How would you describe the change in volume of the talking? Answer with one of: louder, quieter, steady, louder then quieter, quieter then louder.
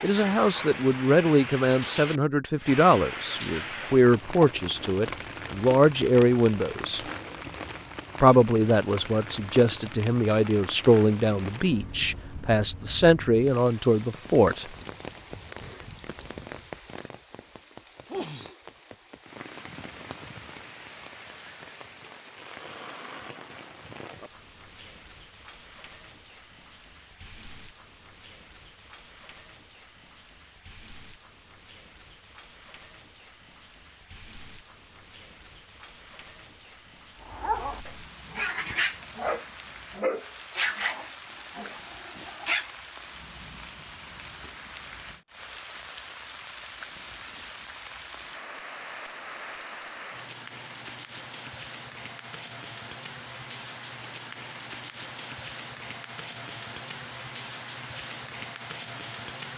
steady.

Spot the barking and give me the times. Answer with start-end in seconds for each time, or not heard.
37.2-42.8.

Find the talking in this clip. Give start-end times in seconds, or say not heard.
0.0-7.0, 8.2-14.7.